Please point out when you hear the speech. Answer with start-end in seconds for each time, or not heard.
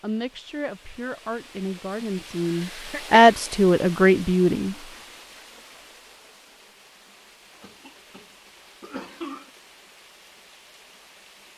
0.0-4.8.